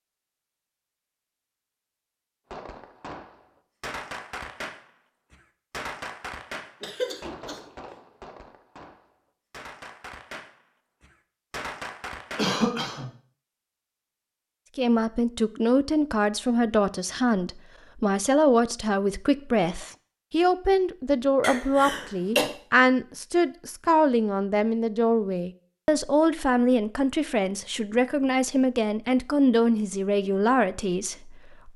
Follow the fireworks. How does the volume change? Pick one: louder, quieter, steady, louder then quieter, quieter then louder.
quieter then louder.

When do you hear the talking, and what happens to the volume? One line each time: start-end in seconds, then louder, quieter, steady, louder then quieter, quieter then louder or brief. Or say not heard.
14.8-31.7 steady.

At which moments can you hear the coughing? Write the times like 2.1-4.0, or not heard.
6.8-7.6, 12.3-13.1, 21.4-22.4.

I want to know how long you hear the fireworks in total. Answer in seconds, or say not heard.
10 s.